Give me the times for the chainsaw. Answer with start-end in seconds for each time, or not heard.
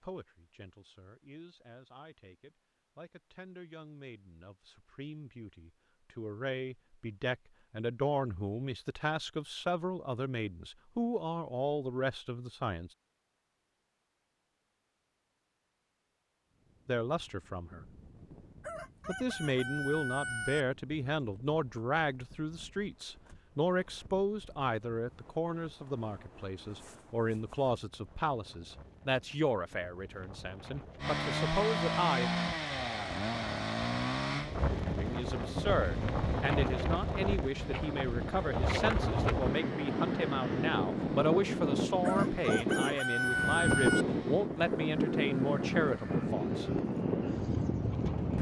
31.0-48.3.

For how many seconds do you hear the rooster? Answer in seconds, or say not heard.
4 s.